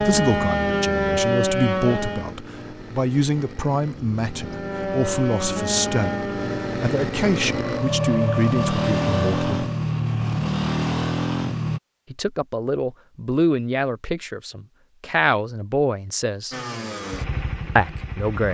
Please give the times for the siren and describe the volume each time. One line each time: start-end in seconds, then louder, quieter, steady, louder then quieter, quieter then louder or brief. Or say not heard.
0.0-2.4 brief
4.3-9.8 quieter then louder.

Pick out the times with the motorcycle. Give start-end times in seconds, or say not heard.
0.0-11.8, 16.5-18.5.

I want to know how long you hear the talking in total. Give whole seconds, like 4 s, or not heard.
15 s.